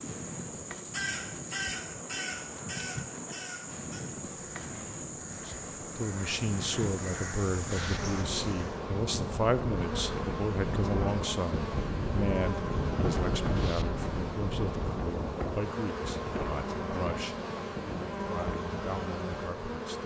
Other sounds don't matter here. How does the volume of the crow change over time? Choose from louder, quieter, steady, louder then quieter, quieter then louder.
quieter then louder.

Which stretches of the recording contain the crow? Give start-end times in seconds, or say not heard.
0.8-8.8.